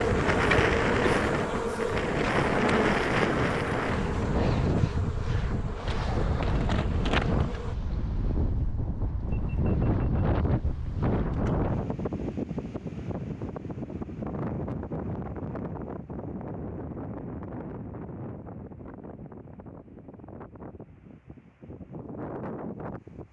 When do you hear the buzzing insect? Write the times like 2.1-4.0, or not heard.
0.0-7.8.